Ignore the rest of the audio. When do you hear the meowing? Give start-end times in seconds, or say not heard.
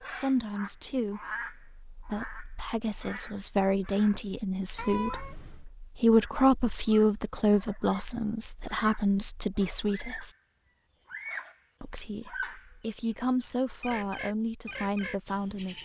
4.8-5.7.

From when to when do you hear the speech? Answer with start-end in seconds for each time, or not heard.
0.0-10.3, 11.8-15.8.